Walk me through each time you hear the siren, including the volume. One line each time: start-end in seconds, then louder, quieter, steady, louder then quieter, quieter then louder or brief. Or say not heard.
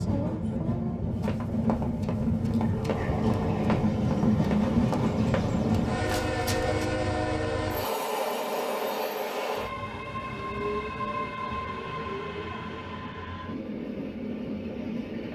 not heard.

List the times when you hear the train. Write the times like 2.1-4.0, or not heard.
0.0-15.3.